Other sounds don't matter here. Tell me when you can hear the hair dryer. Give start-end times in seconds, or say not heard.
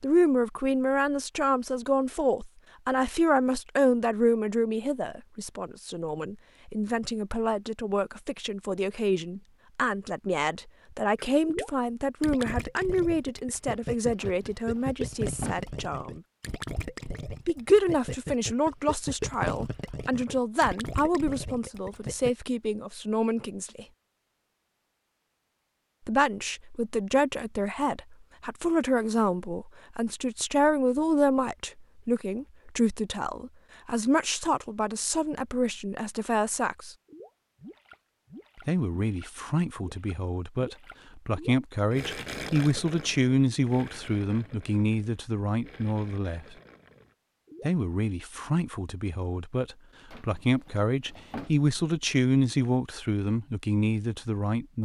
not heard.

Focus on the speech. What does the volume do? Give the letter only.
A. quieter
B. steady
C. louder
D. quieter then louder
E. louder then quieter
B.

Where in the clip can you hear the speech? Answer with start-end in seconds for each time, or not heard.
0.0-16.2, 17.4-23.9, 26.1-37.0, 38.6-46.5, 47.6-54.8.